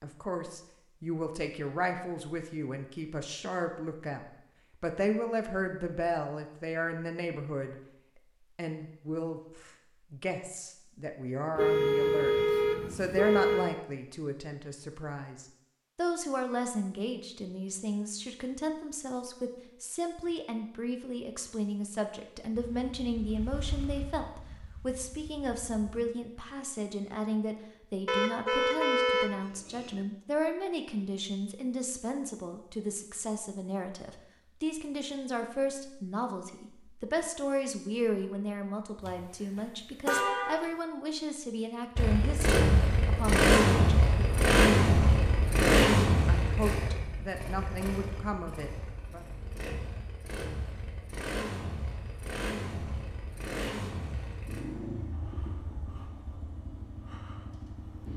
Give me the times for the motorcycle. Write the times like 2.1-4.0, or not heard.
22.6-26.1, 42.0-58.1.